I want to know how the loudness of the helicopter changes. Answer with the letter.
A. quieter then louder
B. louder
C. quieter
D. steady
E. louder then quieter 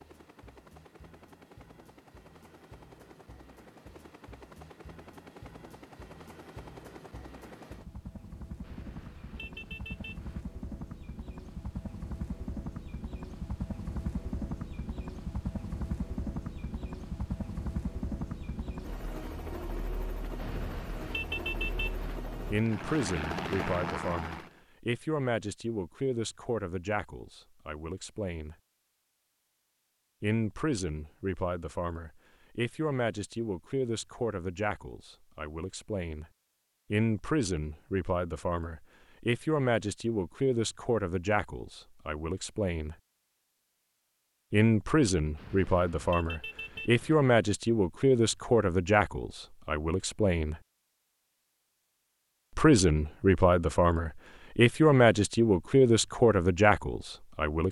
B.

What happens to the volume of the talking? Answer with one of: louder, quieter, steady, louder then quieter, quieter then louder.
louder.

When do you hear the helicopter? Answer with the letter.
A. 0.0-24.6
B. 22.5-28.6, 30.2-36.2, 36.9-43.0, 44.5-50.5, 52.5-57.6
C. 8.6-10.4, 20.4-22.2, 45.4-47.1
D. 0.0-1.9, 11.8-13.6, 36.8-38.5
A.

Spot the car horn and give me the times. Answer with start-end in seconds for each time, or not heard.
8.6-10.4, 20.4-22.2, 45.4-47.1.